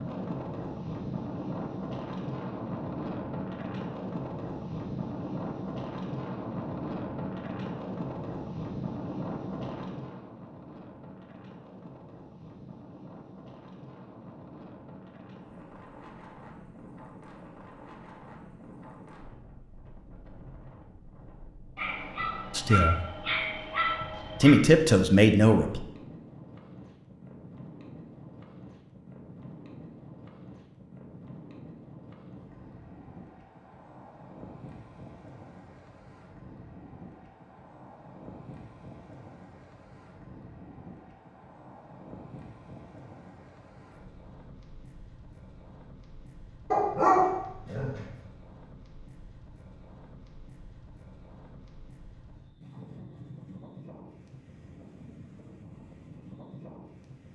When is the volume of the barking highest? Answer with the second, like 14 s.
47 s.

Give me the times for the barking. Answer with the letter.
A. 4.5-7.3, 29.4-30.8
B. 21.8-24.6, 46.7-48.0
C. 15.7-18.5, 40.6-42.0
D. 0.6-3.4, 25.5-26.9
B.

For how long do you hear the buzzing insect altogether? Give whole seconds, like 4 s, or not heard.
not heard.